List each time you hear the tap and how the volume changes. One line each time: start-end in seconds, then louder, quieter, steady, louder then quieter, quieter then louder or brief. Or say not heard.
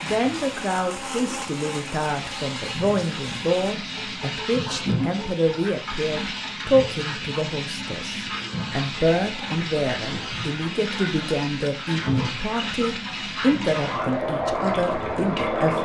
0.0-15.8 louder.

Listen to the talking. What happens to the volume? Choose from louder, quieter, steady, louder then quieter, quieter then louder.
steady.